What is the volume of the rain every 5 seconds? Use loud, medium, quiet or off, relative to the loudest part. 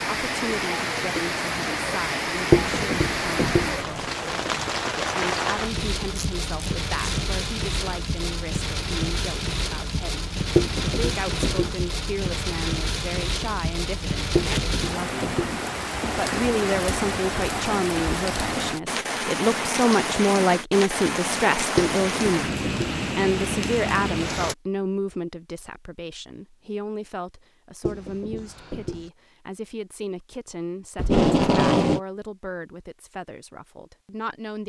loud, loud, loud, loud, loud, off, off.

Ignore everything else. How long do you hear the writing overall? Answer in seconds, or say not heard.
6 s.